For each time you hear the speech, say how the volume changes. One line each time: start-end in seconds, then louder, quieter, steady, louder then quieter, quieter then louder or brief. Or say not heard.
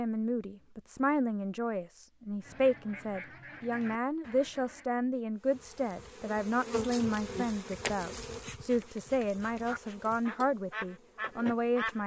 0.0-12.0 steady.